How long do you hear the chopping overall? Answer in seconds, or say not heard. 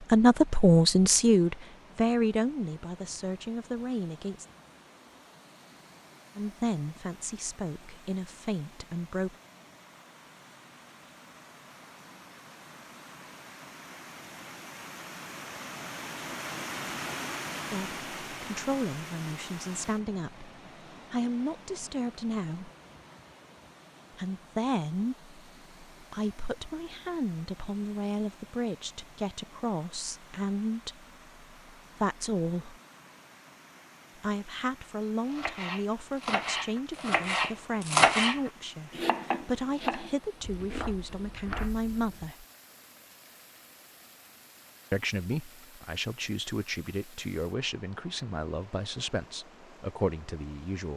7 s.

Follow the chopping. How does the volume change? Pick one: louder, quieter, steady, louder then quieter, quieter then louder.
louder then quieter.